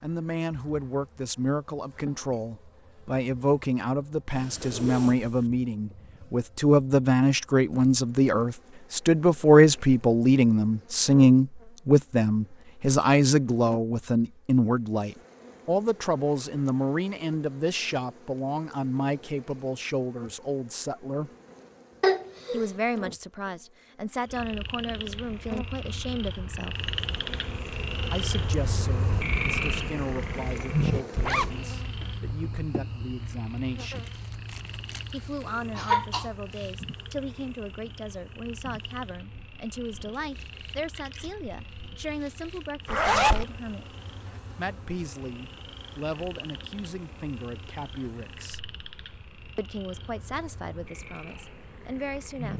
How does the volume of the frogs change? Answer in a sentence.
The volume of the frogs goes down.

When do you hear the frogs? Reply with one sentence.
You can hear the frogs from 24.2 to 52.5 s.